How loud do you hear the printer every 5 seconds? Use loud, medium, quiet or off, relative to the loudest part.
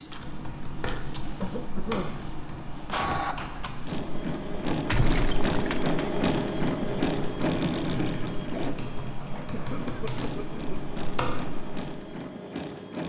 medium, loud, medium.